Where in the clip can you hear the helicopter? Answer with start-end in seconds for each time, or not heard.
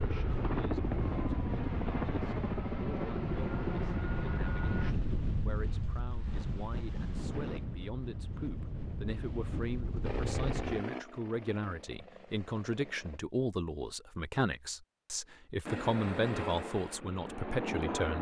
0.0-5.0, 10.0-13.2, 15.7-18.1.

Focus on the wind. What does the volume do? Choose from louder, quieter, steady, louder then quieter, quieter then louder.
steady.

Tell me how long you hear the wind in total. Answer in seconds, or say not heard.
11 s.